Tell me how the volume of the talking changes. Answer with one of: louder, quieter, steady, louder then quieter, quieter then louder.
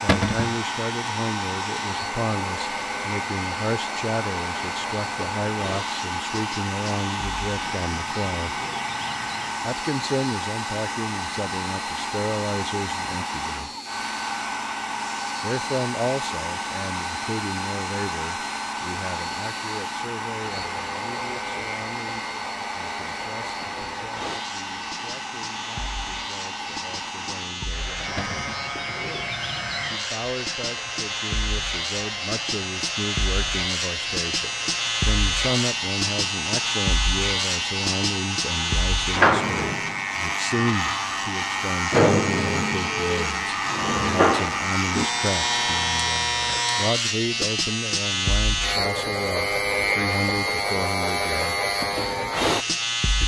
quieter then louder.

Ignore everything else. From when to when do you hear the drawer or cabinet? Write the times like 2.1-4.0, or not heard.
0.1-0.6, 28.1-28.6.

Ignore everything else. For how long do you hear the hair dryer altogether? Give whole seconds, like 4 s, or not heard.
46 s.